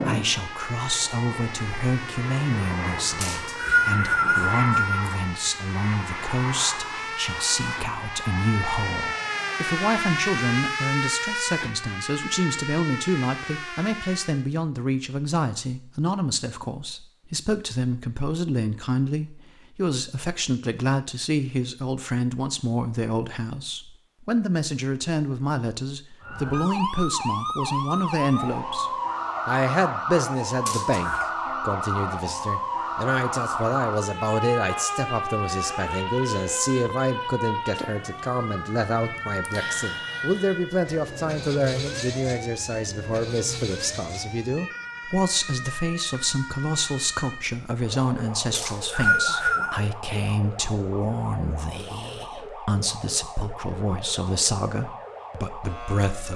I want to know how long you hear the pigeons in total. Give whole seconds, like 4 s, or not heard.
not heard.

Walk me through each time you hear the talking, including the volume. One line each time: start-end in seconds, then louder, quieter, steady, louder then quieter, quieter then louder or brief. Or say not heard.
0.0-56.3 steady.